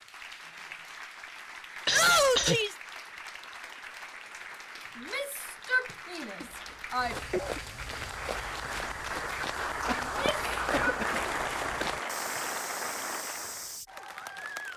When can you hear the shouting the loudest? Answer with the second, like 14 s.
2 s.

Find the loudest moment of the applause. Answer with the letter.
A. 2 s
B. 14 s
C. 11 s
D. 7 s
C.